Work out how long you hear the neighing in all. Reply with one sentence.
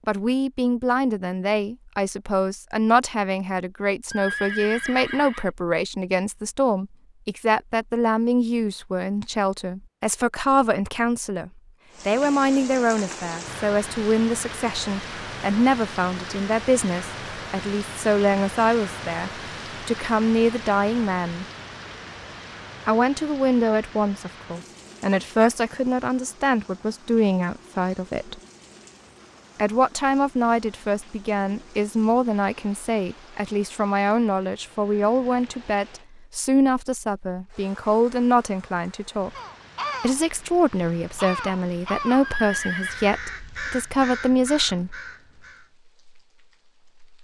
You can hear the neighing for 2 seconds altogether.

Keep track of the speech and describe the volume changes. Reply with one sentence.
The loudness of the speech stays about the same.